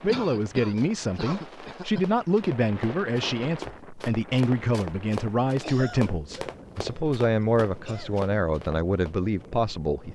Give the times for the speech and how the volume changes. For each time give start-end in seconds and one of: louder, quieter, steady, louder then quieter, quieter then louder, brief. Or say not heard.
0.0-10.1 steady.